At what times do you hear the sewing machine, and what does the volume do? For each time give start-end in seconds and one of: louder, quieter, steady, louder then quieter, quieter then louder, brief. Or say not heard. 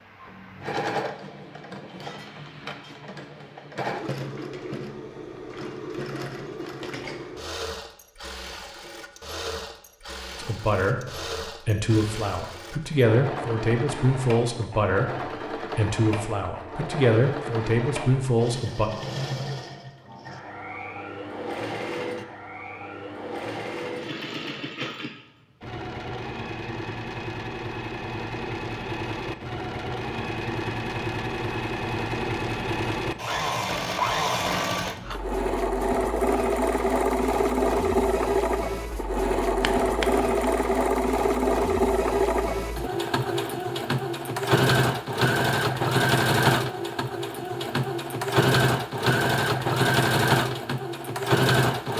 0.0-51.9 louder.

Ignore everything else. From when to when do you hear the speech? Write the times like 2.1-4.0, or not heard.
10.3-18.9.